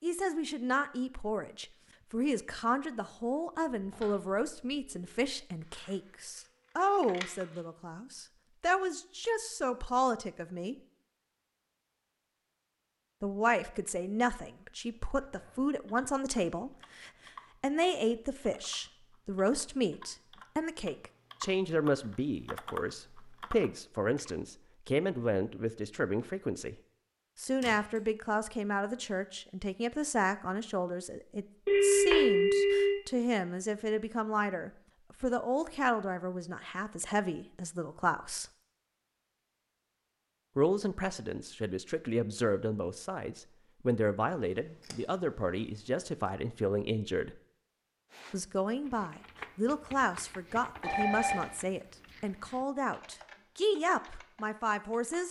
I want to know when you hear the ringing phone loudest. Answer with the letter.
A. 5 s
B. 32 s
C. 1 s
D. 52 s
B.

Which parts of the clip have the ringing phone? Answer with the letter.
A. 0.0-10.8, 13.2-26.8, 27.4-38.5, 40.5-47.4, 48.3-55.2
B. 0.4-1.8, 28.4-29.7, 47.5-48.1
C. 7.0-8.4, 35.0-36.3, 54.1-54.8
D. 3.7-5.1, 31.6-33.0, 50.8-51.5
D.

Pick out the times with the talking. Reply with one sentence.
The talking can be heard from 0.0 to 10.8 s, from 13.2 to 26.8 s, from 27.4 to 38.5 s, from 40.5 to 47.4 s and from 48.3 to 55.2 s.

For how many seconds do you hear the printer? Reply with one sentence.
You can't hear the printer here.